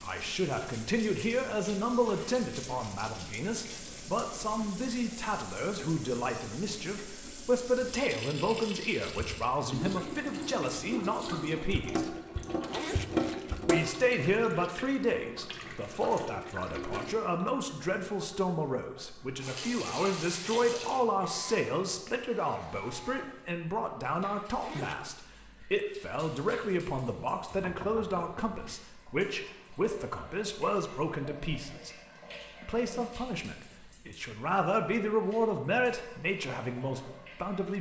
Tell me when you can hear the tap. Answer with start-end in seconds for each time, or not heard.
0.0-37.7.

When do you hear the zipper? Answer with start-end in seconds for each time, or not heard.
12.7-13.6, 24.6-25.1.